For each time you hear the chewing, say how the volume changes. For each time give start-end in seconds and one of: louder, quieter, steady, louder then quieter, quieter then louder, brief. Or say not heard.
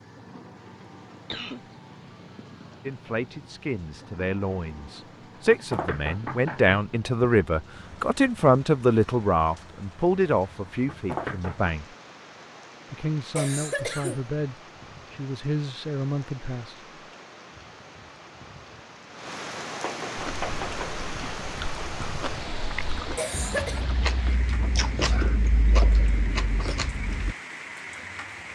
20.1-27.4 louder.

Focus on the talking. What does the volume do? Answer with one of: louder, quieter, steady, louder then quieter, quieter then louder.
louder then quieter.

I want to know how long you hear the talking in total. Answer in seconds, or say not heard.
13 s.